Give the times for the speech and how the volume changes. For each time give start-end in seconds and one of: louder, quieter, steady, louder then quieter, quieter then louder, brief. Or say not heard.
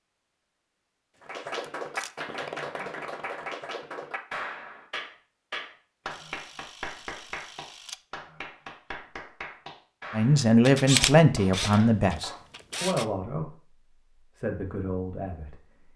10.2-15.9 quieter.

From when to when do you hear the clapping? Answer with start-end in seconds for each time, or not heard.
1.2-12.4.